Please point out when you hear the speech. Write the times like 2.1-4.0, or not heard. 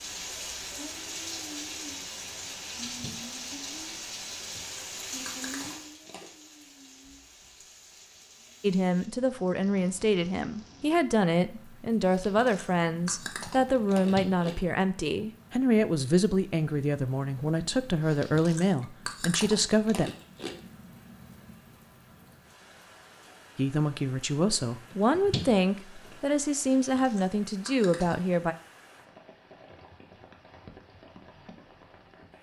8.6-20.1, 23.6-28.6.